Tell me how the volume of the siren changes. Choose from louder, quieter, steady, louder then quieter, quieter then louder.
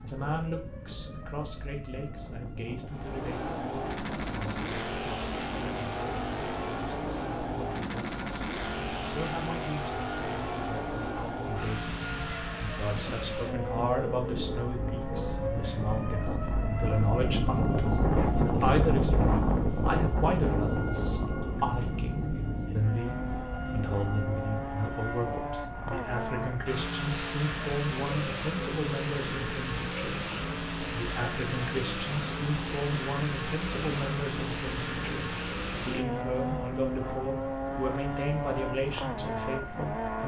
louder then quieter.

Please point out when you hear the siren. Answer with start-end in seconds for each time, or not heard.
0.0-40.2.